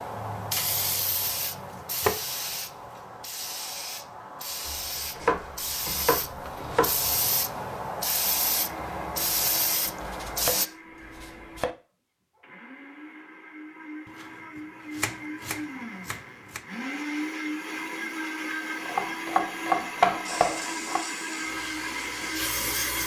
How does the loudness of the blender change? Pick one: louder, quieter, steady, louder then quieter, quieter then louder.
louder.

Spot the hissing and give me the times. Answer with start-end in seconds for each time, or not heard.
0.0-10.7, 20.2-23.0.